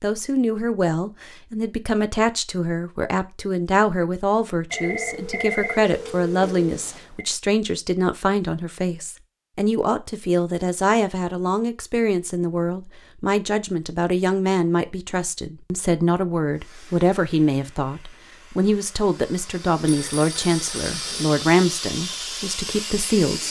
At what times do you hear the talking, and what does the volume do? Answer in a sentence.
You can hear the talking from 0.0 to 23.4 s, at a steady volume.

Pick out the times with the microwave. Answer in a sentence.
You can't hear the microwave here.